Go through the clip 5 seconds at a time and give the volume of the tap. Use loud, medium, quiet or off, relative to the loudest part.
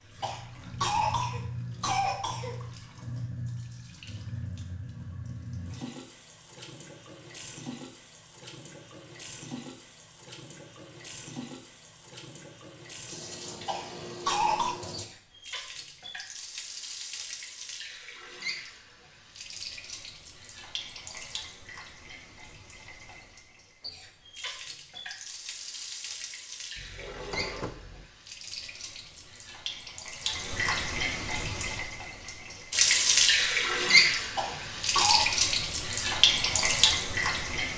quiet, quiet, quiet, quiet, quiet, quiet, loud, loud.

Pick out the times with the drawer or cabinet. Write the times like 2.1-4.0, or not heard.
26.8-28.1.